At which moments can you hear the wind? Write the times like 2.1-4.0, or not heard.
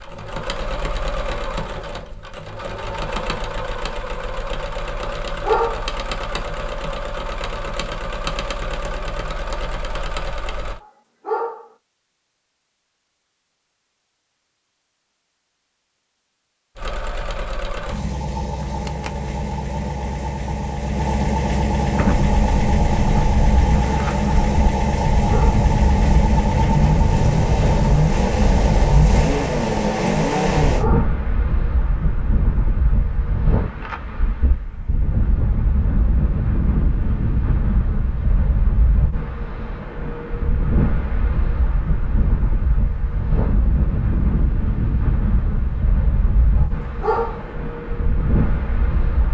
21.9-49.2.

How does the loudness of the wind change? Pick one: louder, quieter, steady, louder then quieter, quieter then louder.
steady.